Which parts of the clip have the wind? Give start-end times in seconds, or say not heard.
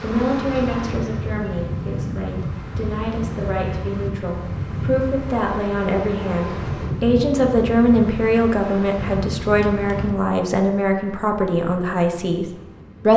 0.0-13.1.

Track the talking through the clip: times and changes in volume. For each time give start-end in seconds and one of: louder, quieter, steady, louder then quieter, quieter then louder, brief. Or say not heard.
0.0-12.4 louder.